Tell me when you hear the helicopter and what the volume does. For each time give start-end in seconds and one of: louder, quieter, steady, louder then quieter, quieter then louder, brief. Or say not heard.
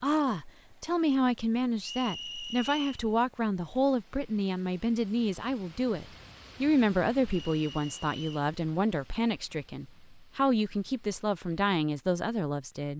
not heard.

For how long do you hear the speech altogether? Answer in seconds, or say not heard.
13 s.